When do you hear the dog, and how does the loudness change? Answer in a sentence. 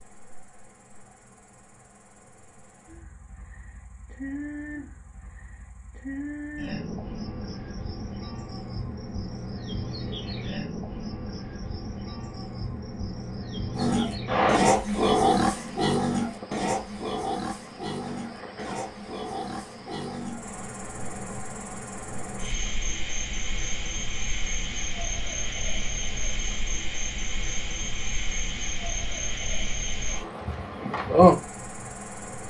You can't hear the dog here.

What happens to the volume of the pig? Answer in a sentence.
The loudness of the pig goes down.